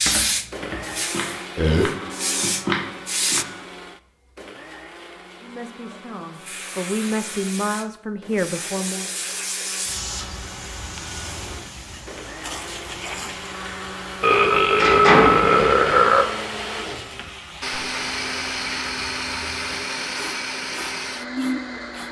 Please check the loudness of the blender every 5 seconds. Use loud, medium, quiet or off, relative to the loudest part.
medium, quiet, medium, loud, loud.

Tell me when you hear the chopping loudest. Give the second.
3 s.